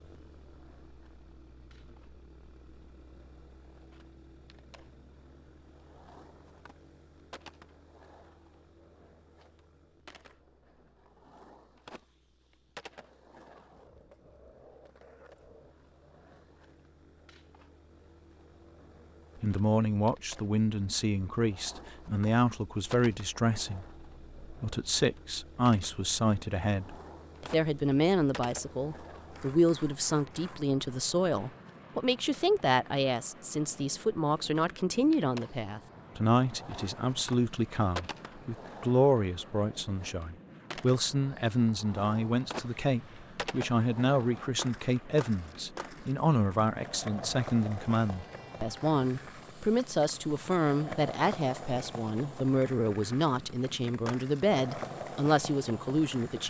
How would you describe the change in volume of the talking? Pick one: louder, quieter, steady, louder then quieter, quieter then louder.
steady.